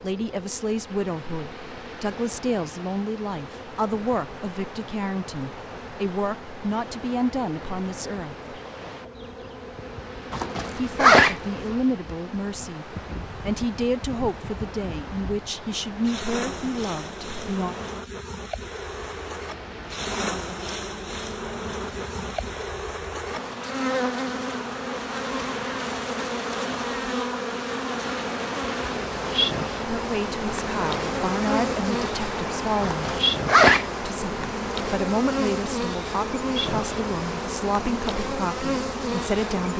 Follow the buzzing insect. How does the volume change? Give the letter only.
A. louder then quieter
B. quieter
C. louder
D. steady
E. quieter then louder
C.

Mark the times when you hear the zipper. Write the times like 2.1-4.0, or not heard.
10.3-11.3, 32.8-33.9.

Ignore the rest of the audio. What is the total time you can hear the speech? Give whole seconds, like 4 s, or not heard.
24 s.